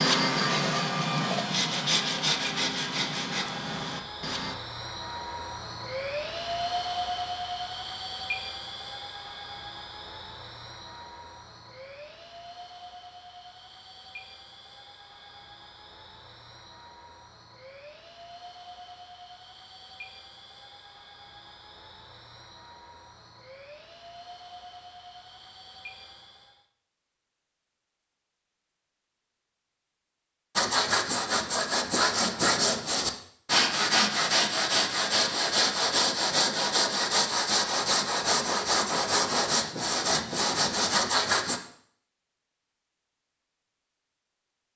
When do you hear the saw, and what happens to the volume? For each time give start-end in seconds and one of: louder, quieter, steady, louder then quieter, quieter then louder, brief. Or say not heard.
0.0-4.5 quieter
30.6-41.6 steady.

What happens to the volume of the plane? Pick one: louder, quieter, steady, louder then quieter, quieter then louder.
quieter.